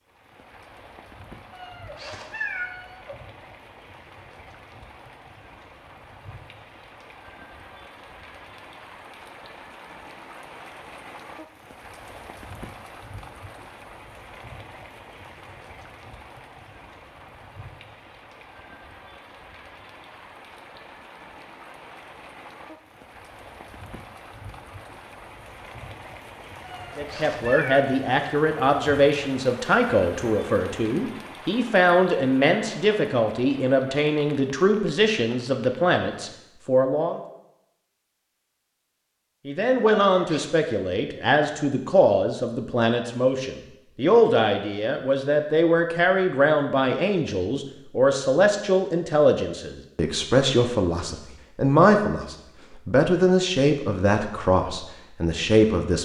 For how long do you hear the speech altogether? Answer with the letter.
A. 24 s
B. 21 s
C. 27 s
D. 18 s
C.